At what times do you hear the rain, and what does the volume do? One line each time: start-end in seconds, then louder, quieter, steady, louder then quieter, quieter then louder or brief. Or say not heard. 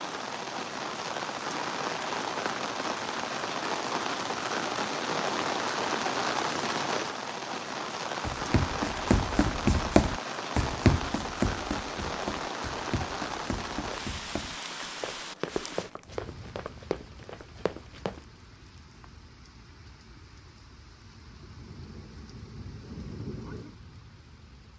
0.0-24.7 quieter.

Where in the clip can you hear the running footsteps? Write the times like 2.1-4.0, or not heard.
8.2-18.2.